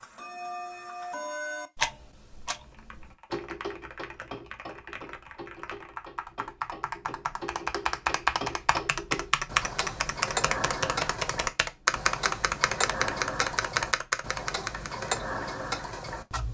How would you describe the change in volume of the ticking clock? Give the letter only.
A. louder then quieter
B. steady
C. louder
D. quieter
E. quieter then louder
E.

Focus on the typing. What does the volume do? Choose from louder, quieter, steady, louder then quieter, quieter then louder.
louder.